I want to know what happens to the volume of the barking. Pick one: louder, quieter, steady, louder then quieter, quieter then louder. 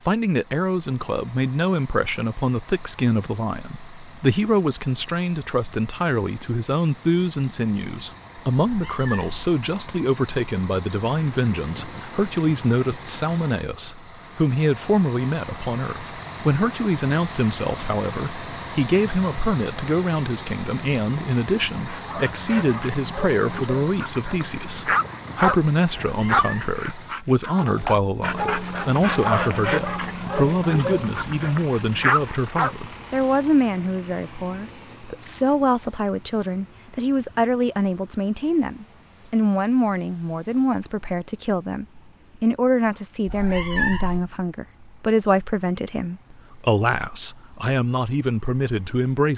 louder.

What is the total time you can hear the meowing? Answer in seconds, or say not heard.
3 s.